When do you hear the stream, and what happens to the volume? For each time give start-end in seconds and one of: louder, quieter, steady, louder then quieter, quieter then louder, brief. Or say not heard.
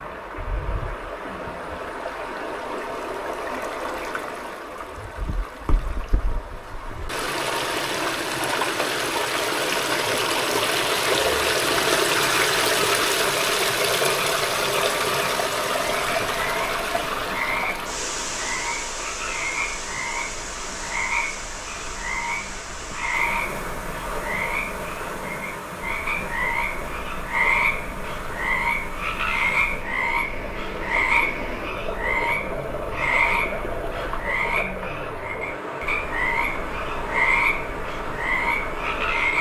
0.0-39.3 louder then quieter.